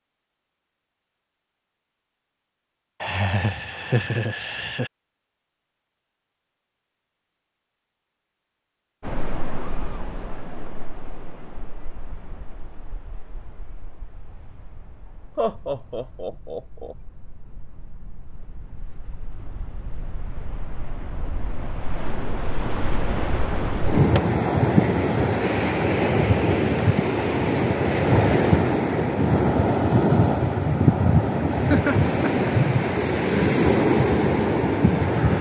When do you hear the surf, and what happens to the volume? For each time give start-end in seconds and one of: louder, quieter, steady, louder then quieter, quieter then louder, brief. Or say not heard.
9.0-35.3 quieter then louder.